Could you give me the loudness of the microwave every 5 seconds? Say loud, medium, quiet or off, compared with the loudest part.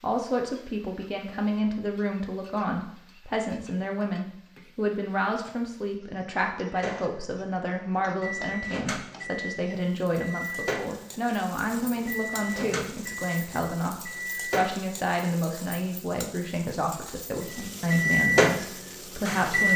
off, quiet, medium, loud.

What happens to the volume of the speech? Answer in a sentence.
The loudness of the speech stays about the same.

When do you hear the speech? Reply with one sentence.
You can hear the speech from 0.0 to 19.7 s.